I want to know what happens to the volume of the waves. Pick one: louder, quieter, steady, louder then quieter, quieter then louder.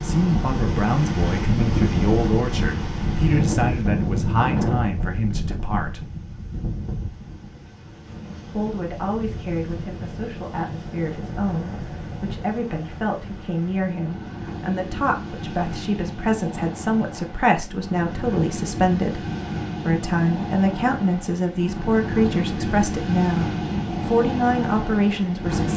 quieter then louder.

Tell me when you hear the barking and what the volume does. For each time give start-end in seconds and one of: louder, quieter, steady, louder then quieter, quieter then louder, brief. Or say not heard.
not heard.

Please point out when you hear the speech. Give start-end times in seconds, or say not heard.
0.0-6.0, 8.5-19.2, 19.9-25.7.